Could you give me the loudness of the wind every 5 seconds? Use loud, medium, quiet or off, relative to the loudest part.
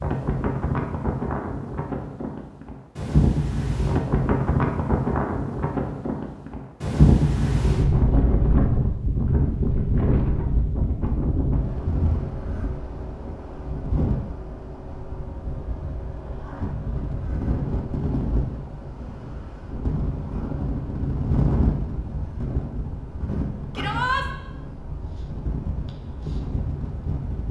loud, loud, medium, medium, medium, medium.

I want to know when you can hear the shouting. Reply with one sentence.
You can hear the shouting from 23.8 to 24.2 s.